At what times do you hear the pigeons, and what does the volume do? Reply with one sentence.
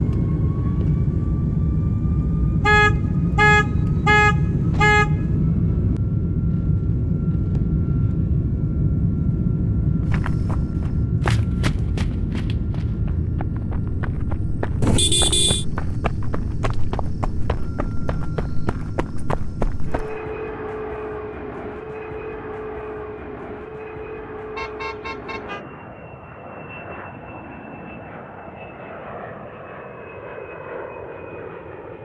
You can't hear the pigeons here.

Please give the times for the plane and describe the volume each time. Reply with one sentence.
The plane can be heard from 0.0 to 31.9 s, getting quieter.